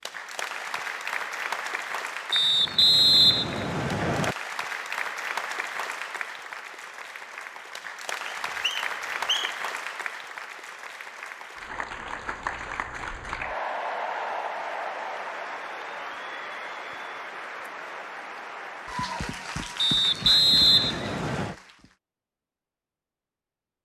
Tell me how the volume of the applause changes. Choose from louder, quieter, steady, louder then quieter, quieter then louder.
steady.